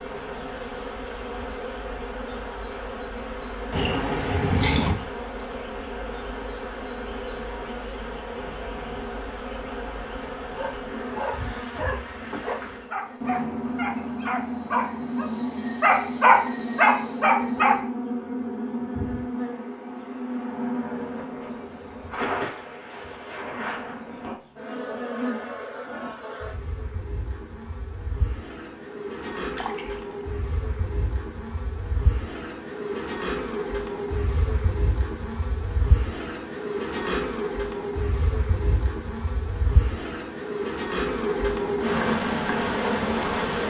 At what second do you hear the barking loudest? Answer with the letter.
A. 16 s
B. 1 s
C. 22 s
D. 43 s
A.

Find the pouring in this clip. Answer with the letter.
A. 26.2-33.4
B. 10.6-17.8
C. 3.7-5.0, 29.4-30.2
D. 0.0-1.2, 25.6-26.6
C.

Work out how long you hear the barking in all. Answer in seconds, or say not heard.
7 s.